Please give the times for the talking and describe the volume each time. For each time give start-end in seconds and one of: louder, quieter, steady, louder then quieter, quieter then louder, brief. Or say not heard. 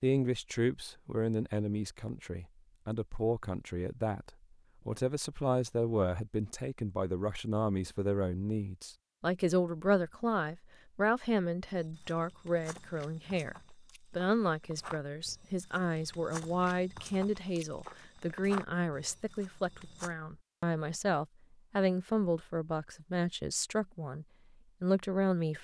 0.0-25.5 steady.